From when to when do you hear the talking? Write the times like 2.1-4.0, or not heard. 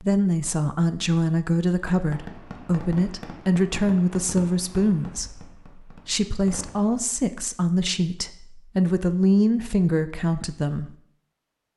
0.0-10.9.